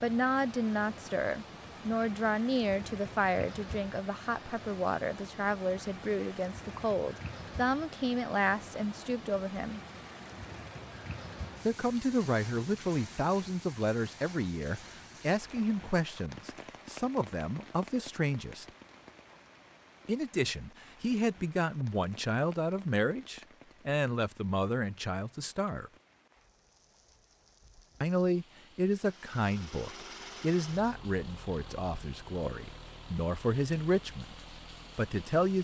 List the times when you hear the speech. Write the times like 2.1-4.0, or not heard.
0.0-9.8, 11.7-18.6, 20.1-25.9, 28.0-34.4, 35.0-35.5.